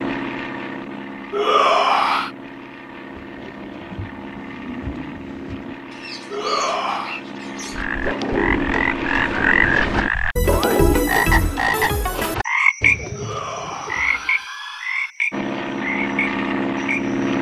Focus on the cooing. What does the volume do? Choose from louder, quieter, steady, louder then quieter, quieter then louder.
louder then quieter.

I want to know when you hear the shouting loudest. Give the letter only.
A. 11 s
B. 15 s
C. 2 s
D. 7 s
C.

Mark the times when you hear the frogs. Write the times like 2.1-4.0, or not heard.
7.7-17.3.